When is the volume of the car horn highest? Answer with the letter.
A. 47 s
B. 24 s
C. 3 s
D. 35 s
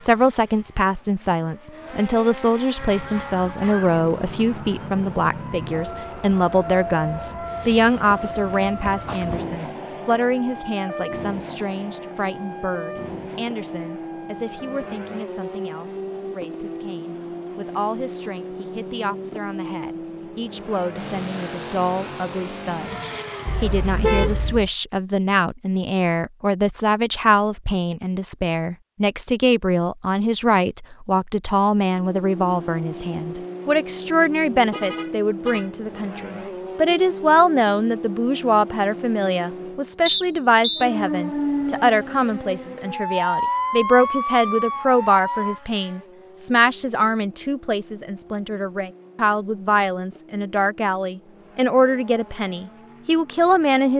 B.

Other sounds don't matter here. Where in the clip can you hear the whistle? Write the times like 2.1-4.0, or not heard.
40.0-40.9.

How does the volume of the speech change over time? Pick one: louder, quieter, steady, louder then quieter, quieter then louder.
quieter then louder.